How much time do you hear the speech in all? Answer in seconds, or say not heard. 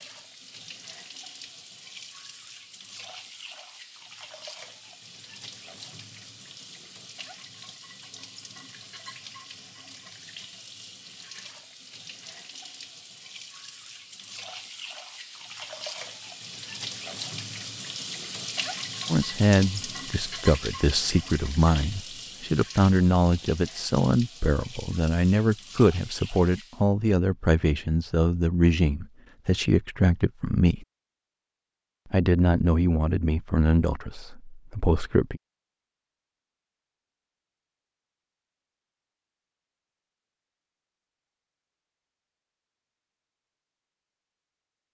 15 s.